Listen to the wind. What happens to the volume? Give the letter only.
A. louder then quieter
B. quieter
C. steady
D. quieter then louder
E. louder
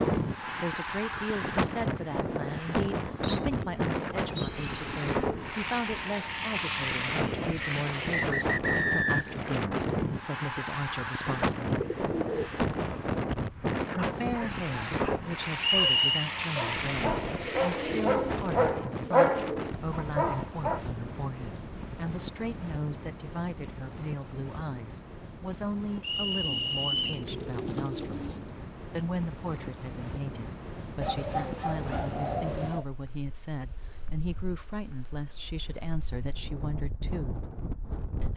B.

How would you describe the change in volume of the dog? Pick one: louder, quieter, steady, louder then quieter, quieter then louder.
louder.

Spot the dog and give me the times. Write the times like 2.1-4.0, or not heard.
13.8-20.9.